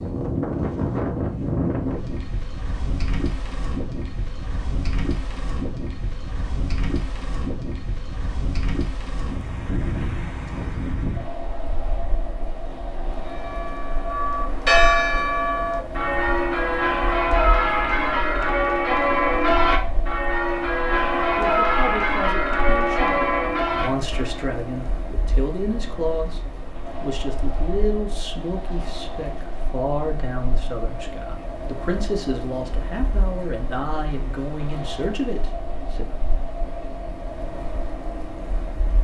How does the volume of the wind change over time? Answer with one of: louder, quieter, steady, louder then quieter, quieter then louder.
quieter.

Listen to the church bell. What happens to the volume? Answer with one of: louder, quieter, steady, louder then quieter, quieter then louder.
steady.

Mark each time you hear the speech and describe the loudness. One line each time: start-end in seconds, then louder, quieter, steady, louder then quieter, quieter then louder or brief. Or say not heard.
21.4-36.0 steady.